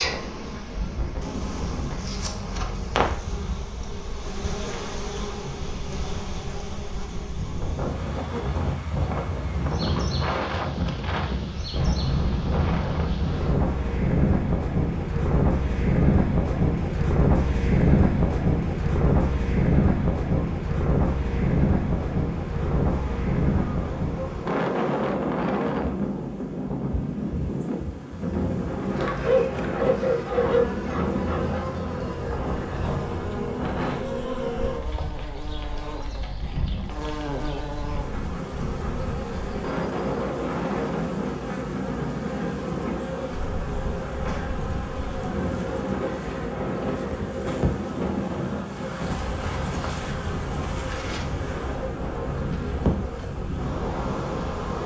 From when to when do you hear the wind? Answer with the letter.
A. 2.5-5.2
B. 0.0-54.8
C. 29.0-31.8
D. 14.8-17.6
B.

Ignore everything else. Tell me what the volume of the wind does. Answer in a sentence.
The loudness of the wind goes up, then down.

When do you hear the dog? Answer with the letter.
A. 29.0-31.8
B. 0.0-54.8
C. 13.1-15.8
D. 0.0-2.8
A.